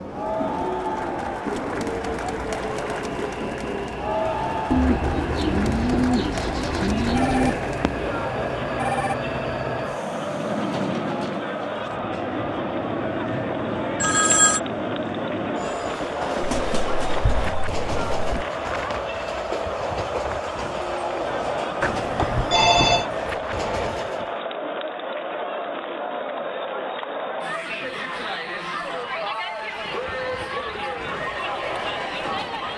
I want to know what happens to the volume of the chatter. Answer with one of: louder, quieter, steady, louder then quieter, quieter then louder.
steady.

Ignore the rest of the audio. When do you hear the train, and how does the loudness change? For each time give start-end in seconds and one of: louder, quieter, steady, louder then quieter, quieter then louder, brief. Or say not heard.
0.0-24.4 steady
29.9-32.7 brief.